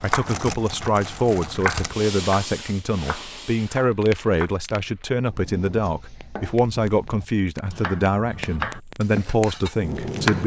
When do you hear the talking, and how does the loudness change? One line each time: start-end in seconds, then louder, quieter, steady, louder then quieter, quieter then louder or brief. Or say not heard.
0.0-10.4 steady.